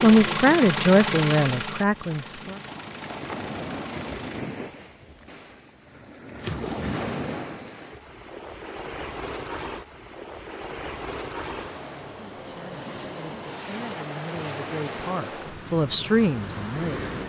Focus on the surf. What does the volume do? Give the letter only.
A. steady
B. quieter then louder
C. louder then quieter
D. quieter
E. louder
A.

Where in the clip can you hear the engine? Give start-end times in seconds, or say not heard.
0.0-4.4.